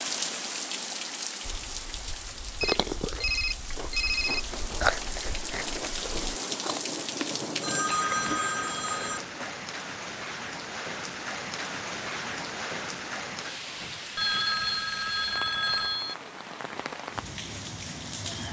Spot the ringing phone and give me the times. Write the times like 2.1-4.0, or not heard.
2.6-4.5, 7.6-9.6, 14.2-16.1.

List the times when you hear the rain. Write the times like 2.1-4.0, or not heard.
0.0-18.4.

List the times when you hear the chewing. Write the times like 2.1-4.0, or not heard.
1.4-8.4.